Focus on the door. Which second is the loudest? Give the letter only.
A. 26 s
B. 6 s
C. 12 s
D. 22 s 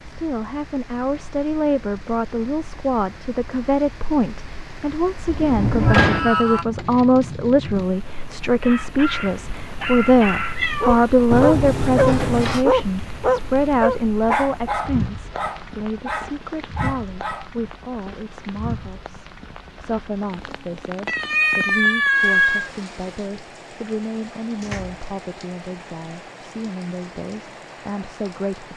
B.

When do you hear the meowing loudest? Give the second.
22 s.